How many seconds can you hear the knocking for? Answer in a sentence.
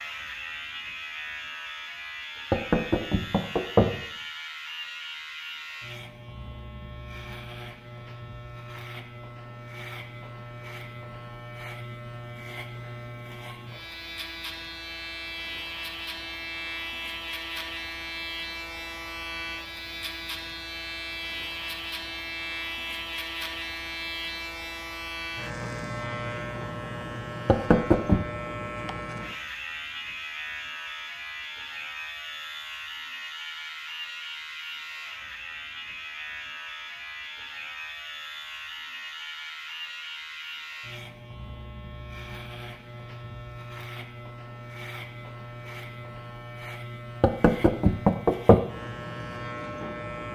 You can hear the knocking for 4 seconds altogether.